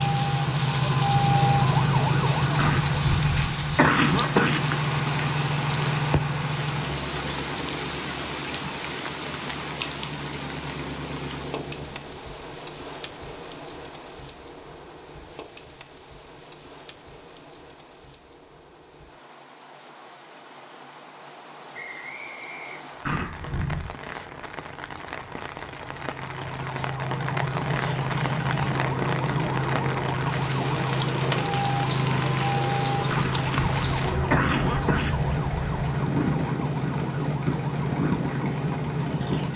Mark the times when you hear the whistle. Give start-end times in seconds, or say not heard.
21.7-22.9.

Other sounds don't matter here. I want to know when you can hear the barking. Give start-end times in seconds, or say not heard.
not heard.